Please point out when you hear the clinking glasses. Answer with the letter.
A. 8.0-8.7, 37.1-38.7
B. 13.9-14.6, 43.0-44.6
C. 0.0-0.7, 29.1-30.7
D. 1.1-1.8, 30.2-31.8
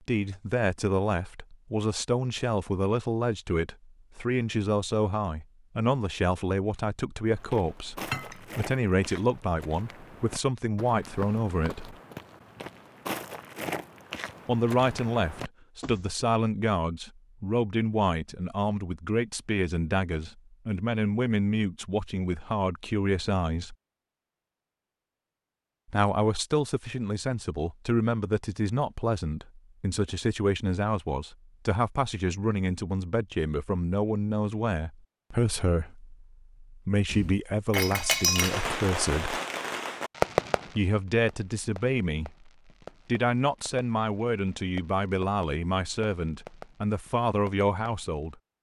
A.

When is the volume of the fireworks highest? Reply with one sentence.
The loudest moment of the fireworks is at 40 seconds.